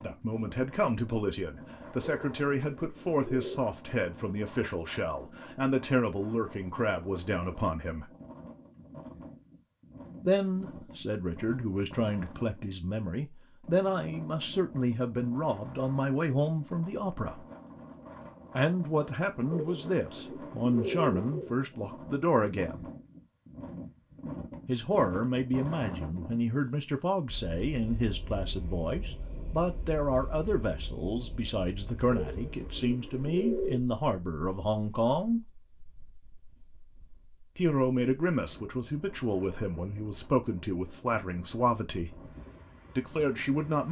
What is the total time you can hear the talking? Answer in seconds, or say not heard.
36 s.